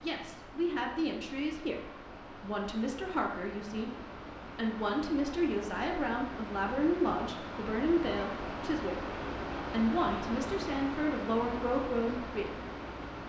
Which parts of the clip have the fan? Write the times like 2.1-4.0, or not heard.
0.0-13.2.